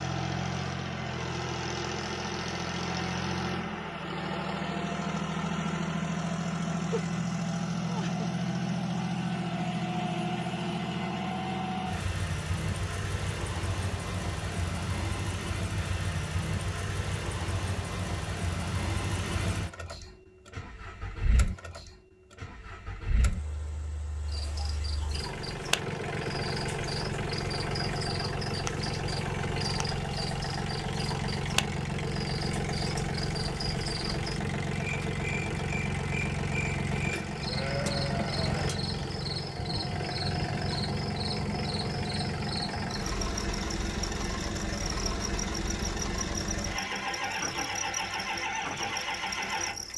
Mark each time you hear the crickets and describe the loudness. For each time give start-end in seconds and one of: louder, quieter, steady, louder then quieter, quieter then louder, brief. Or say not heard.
24.2-49.9 steady.